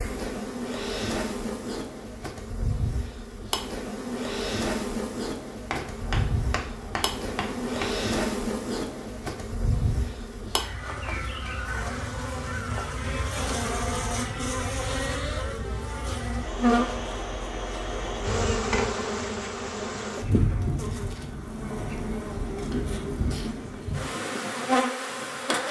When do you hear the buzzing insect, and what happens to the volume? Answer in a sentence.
The buzzing insect can be heard from 0.0 to 25.6 s, at a steady volume.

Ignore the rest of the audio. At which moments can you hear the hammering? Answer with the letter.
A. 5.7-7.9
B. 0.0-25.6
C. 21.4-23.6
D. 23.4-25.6
A.